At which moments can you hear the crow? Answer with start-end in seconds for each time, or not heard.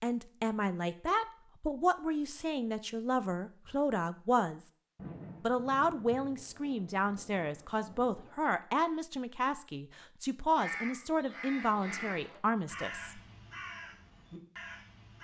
10.6-15.1.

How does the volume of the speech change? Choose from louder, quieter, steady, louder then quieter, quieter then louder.
steady.